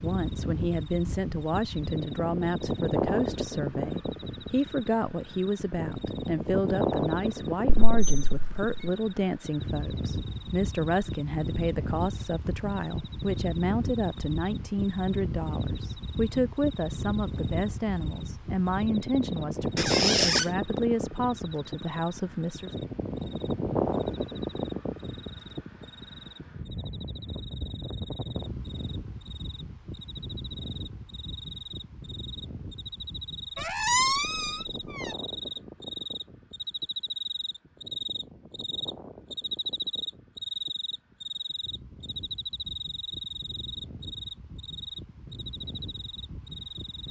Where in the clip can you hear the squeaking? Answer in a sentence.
The squeaking can be heard from 7.7 to 8.9 s, from 19.8 to 20.4 s and from 33.5 to 35.1 s.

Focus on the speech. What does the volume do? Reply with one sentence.
The volume of the speech stays about the same.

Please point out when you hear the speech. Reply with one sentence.
You can hear the speech from 0.0 to 22.7 s.